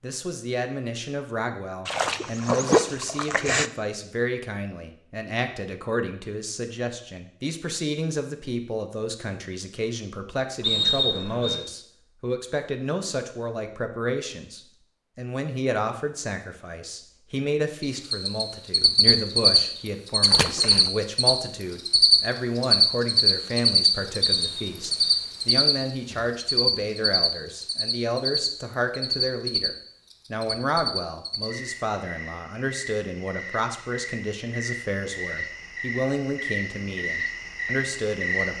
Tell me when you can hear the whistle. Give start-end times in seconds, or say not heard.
10.6-11.6, 24.2-25.1.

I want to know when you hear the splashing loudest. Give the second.
3 s.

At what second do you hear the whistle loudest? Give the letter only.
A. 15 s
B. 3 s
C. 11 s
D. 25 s
C.